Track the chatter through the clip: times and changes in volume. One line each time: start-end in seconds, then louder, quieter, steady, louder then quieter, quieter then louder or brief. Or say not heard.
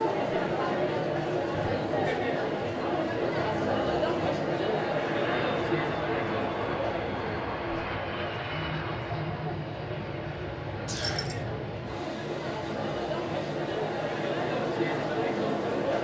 0.0-15.9 quieter then louder.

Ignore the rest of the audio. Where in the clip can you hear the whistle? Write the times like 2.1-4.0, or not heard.
10.8-11.4.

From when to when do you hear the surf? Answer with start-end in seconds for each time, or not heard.
not heard.